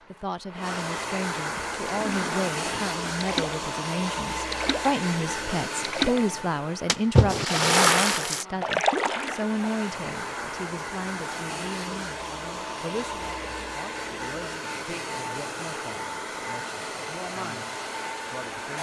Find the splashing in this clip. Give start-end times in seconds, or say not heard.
1.6-3.6, 4.5-5.0, 5.8-6.2, 6.8-9.8.